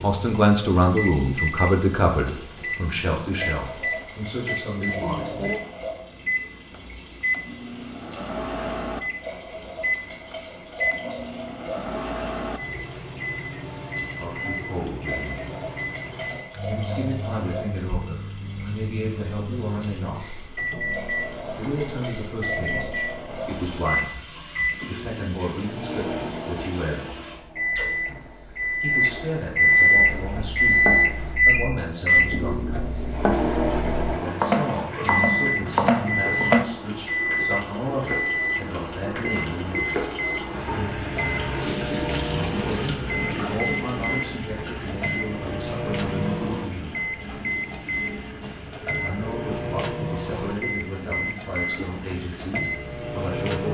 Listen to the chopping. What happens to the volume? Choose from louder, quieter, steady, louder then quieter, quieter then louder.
quieter then louder.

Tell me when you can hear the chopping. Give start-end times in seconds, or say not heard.
30.1-36.6.